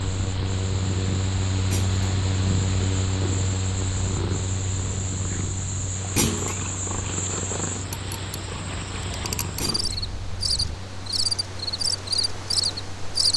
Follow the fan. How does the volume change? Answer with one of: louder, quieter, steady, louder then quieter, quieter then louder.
quieter.